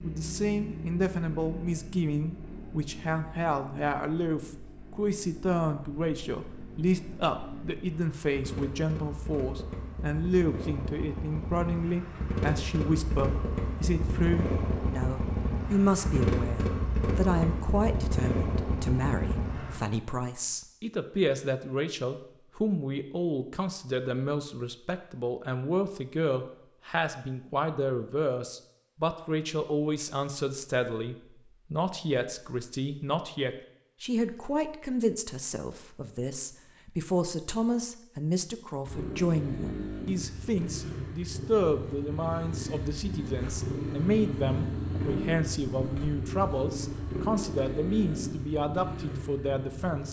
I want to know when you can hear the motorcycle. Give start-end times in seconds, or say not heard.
0.0-19.8, 38.9-50.0.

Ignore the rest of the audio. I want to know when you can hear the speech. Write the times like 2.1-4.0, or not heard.
0.0-50.0.